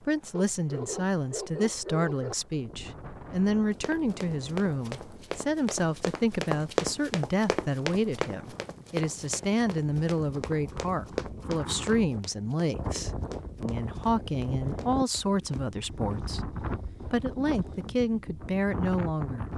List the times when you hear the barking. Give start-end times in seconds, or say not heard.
0.3-2.4.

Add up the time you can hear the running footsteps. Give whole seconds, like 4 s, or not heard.
12 s.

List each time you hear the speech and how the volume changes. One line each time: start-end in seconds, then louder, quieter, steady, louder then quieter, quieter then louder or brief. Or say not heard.
0.1-19.5 steady.